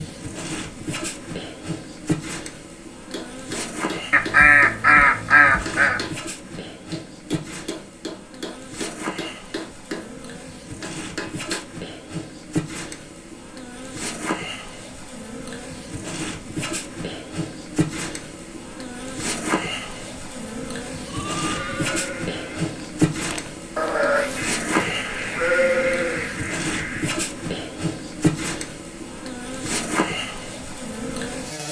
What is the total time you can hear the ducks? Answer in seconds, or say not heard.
5 s.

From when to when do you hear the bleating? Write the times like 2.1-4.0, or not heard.
21.1-26.4.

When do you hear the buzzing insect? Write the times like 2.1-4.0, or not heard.
0.0-31.6.